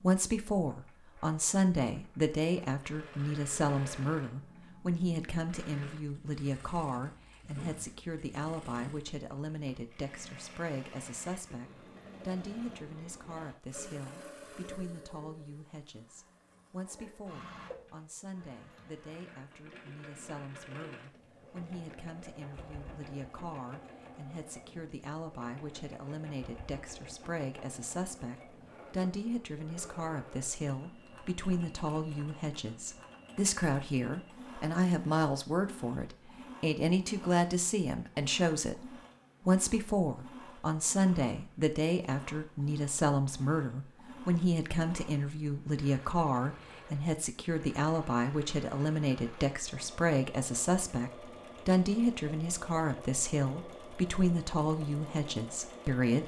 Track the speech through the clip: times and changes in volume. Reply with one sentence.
The speech can be heard from 0.0 to 56.2 s, getting quieter then louder.